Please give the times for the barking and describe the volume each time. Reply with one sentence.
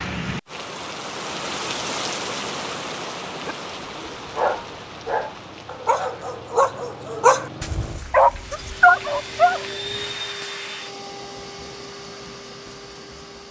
You can hear the barking from 3.2 to 9.7 s, getting louder.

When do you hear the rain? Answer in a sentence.
The rain can be heard from 0.0 to 10.4 s.